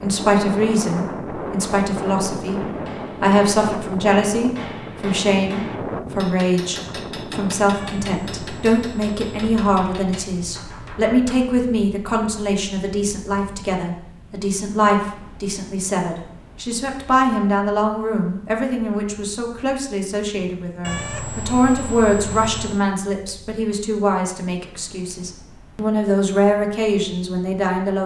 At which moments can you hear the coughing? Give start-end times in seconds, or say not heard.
not heard.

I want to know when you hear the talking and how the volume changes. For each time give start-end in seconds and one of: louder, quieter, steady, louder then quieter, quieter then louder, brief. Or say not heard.
0.0-28.0 steady.